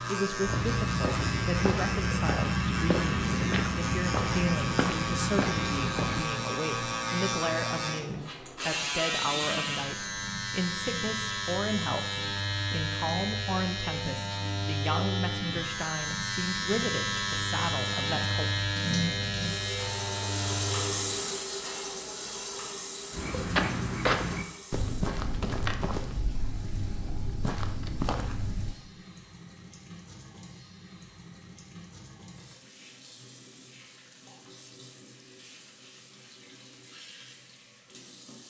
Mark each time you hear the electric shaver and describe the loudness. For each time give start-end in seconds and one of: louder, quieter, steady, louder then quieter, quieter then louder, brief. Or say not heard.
0.0-21.2 steady.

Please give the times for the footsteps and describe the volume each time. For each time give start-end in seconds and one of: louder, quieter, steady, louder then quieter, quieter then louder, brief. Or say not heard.
0.4-6.3 steady
23.1-28.8 quieter then louder.